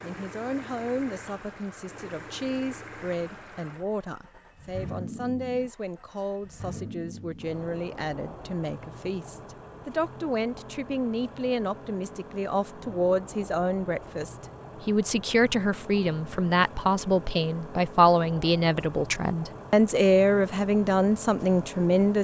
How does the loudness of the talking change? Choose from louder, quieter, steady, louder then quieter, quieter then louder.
louder.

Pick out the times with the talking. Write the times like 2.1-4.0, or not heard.
0.0-22.1.